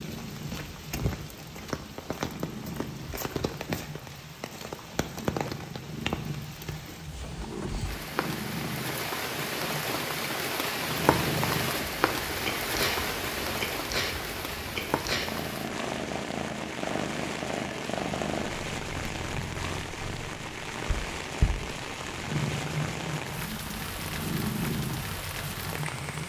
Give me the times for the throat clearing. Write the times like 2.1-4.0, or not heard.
not heard.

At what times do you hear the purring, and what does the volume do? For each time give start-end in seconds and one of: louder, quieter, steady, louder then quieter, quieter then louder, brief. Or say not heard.
0.0-26.2 louder.